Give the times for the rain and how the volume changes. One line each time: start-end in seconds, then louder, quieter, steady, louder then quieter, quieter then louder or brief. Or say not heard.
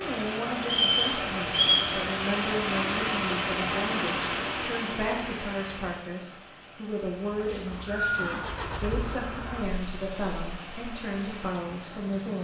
0.0-12.3 quieter.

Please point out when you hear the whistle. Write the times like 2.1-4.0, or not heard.
0.7-1.9, 7.5-8.2.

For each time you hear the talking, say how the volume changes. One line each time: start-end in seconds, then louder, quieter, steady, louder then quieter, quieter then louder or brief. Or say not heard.
0.0-12.3 steady.